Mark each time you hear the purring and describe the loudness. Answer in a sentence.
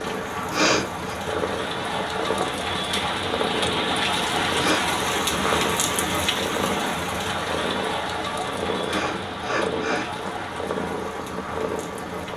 You can hear the purring from 0.0 to 12.3 s, at a steady volume.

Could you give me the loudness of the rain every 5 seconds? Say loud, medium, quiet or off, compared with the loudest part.
loud, loud, medium.